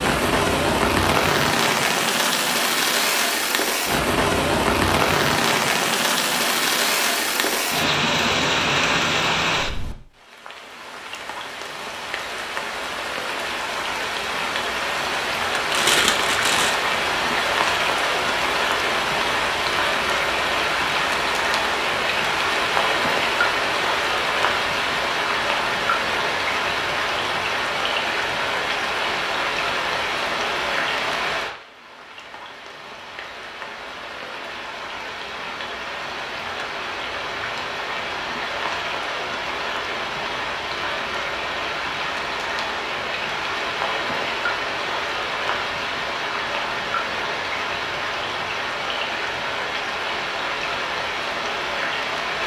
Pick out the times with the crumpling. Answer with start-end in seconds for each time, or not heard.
15.7-16.8.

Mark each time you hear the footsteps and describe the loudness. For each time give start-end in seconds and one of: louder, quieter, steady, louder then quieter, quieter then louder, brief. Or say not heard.
not heard.